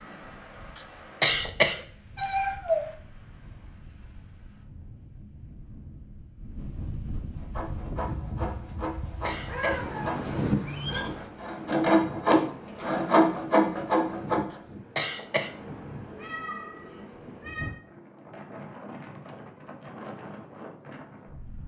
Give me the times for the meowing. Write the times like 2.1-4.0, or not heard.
2.1-2.9, 9.2-11.0, 16.1-17.7.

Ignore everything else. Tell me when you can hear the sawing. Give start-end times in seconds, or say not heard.
7.3-14.4.